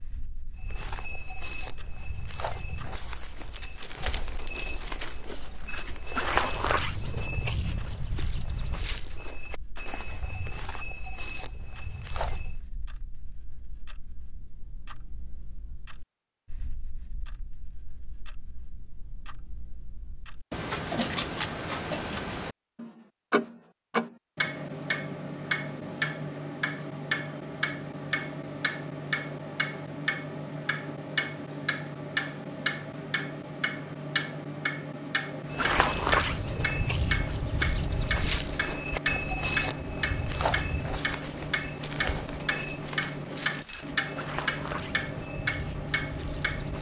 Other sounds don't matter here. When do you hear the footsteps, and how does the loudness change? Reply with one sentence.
The footsteps can be heard from 0.6 to 12.6 s, getting louder then quieter; and from 35.5 to 46.7 s, getting quieter.